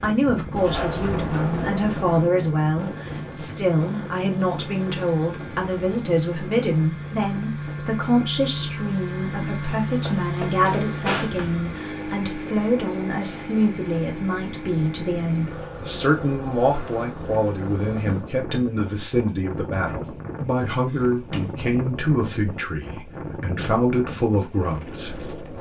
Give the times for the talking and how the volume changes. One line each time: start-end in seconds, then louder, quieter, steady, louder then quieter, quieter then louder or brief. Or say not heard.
0.0-25.3 steady.